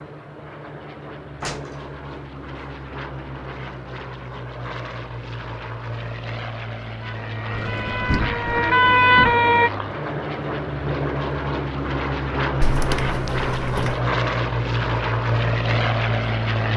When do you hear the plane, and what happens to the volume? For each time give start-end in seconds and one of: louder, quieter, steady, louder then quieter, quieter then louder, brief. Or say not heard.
0.0-16.7 louder.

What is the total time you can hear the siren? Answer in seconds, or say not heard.
3 s.